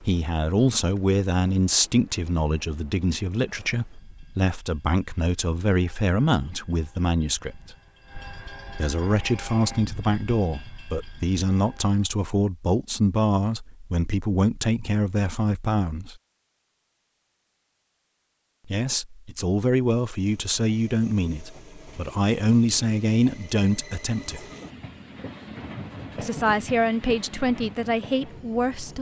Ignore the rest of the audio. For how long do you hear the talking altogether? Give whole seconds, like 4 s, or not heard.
24 s.